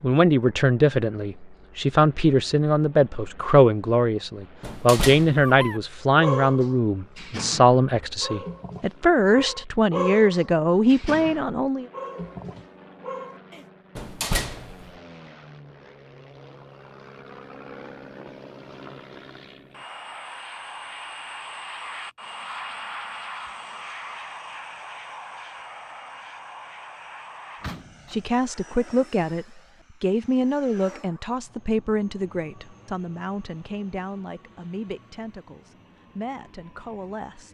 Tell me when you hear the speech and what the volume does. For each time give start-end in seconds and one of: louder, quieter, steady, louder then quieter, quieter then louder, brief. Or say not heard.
0.0-11.8 steady
28.1-37.4 quieter.